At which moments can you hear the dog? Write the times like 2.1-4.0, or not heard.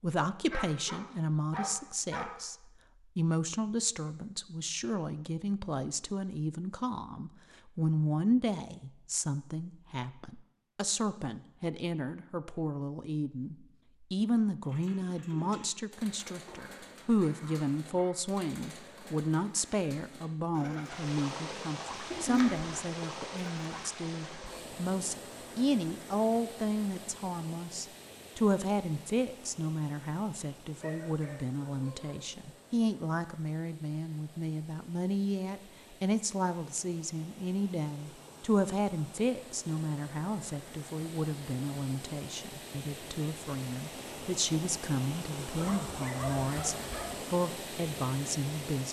0.5-2.4, 16.4-18.2, 30.8-32.4, 45.5-47.2.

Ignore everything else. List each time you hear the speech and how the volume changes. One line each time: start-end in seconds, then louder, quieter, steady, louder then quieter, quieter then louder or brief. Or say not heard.
0.0-2.5 brief
3.1-48.8 steady.